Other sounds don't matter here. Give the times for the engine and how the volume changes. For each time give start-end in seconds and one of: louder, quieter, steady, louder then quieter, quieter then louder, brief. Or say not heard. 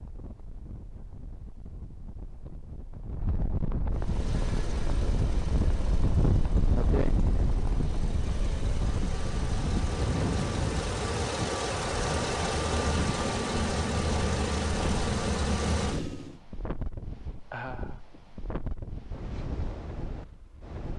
3.9-16.4 louder.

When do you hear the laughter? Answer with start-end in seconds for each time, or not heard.
17.5-18.0.